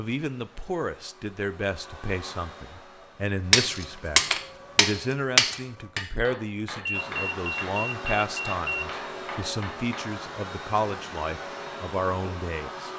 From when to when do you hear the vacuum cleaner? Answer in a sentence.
The vacuum cleaner can be heard from 0.0 to 4.8 s and from 6.9 to 12.9 s.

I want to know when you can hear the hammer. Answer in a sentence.
The hammer can be heard from 3.5 to 10.1 s.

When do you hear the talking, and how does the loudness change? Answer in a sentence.
The talking can be heard from 0.0 to 12.9 s, at a steady volume.